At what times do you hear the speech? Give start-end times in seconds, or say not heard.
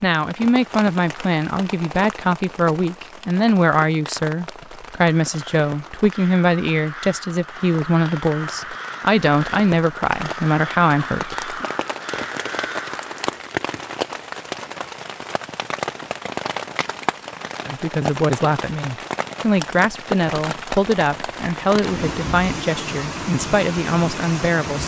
0.0-11.6, 17.6-24.8.